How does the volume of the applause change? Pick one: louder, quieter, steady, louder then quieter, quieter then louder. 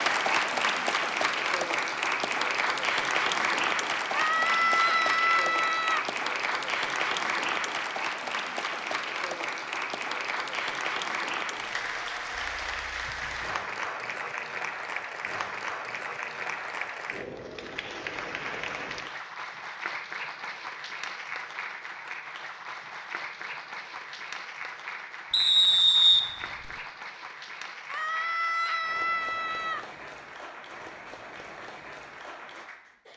quieter.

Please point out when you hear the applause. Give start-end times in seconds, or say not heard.
0.0-33.1.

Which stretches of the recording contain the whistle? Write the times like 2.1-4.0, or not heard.
25.3-26.7.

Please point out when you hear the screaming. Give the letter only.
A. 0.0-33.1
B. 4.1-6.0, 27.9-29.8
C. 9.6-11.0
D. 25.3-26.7
B.